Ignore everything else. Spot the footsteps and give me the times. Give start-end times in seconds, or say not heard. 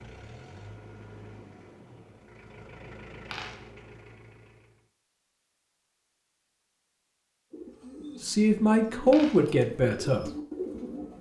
not heard.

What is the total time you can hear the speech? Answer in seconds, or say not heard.
2 s.